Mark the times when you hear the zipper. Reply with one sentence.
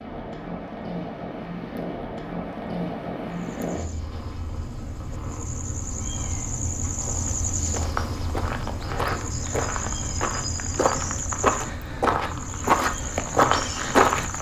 You can hear the zipper from 8.8 to 9.2 s.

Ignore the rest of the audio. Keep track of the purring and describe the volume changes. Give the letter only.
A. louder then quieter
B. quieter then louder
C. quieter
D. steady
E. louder
C.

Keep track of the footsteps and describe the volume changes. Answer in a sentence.
The loudness of the footsteps goes up.